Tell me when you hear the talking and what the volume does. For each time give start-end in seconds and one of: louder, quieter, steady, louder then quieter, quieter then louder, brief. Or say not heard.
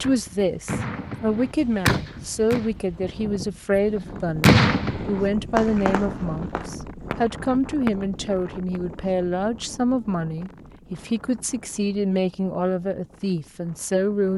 0.0-14.3 steady.